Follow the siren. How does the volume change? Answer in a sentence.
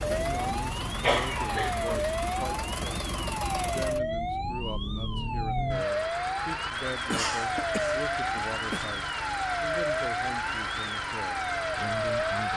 The volume of the siren stays about the same.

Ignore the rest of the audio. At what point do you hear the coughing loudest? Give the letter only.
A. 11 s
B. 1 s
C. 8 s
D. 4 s
B.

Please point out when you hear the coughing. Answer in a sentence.
You can hear the coughing from 1.0 to 1.9 s and from 7.1 to 8.8 s.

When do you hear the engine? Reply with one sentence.
You can hear the engine from 0.0 to 12.5 s.